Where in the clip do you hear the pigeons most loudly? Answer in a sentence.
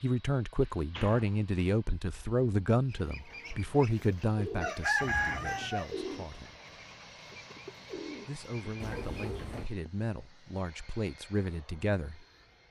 The loudest moment of the pigeons is at 5 seconds.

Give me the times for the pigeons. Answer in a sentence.
The pigeons can be heard from 2.9 to 9.4 s.